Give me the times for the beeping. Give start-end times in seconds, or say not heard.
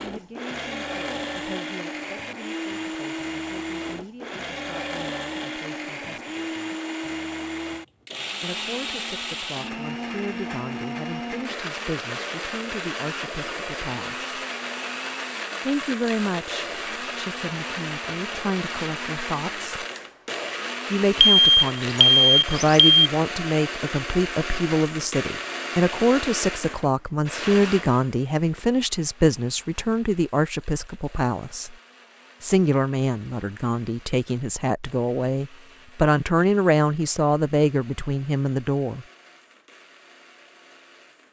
21.2-22.9.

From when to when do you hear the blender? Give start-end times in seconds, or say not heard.
0.0-41.2.